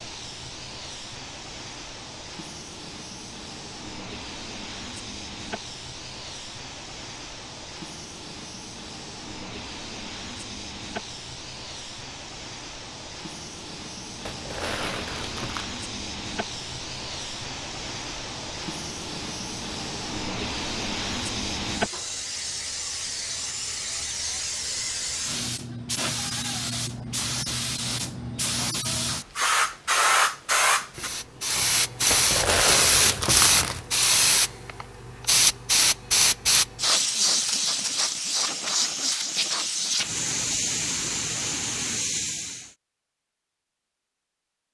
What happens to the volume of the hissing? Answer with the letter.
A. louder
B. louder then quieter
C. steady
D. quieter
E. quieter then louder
A.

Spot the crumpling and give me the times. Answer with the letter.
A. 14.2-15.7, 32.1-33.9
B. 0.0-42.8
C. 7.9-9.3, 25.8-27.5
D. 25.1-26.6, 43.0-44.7
A.